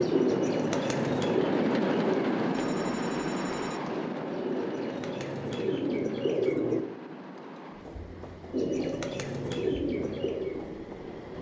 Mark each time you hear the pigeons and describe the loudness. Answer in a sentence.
The pigeons can be heard from 0.0 to 6.8 s, getting quieter then louder; and briefly from 8.5 to 11.3 s.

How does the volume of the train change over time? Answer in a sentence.
The loudness of the train goes down.